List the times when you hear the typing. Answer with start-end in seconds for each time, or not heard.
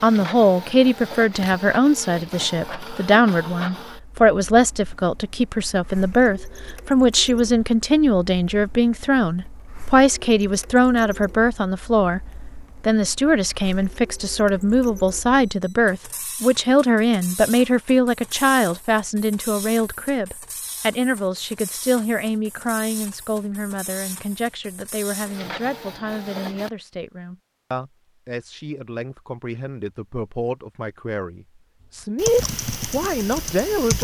31.8-33.9.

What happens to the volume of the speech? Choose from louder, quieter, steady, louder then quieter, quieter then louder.
quieter.